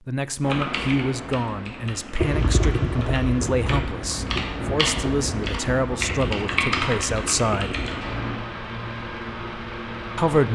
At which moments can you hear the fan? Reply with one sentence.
The fan can be heard from 2.1 to 10.5 s.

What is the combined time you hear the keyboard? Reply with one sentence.
The keyboard can be heard for 8 seconds in total.